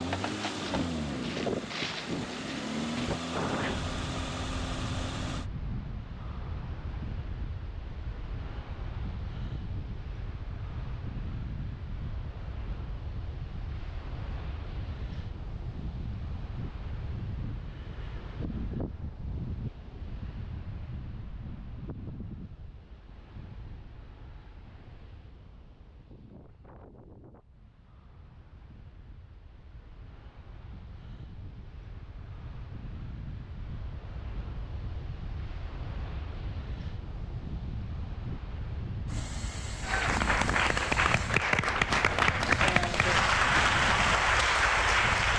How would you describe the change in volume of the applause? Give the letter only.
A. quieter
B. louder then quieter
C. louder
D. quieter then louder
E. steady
E.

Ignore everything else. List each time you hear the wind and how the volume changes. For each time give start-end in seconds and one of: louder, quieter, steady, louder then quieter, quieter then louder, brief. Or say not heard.
0.0-45.3 quieter then louder.